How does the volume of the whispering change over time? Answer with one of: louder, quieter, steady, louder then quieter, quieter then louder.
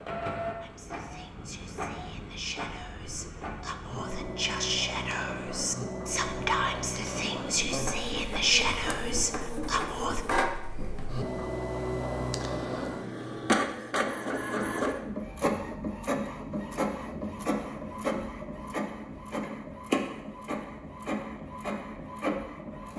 louder.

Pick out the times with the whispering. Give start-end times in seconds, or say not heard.
0.6-10.2.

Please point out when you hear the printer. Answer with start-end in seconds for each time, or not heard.
0.0-22.9.